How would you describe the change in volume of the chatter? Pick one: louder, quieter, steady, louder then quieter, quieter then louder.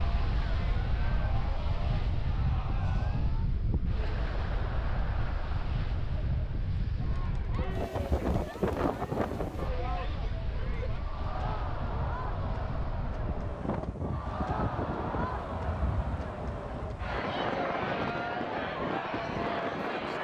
louder.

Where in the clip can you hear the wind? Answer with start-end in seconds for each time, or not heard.
0.0-20.1.